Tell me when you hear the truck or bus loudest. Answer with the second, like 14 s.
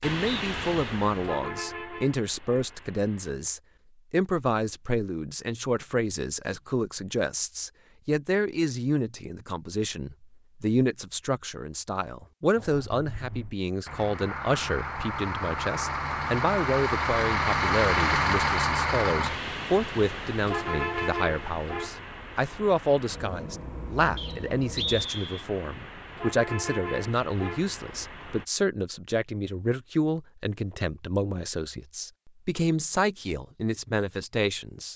18 s.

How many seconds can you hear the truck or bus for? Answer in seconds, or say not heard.
19 s.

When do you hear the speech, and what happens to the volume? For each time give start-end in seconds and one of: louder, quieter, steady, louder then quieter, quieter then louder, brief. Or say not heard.
0.0-34.9 steady.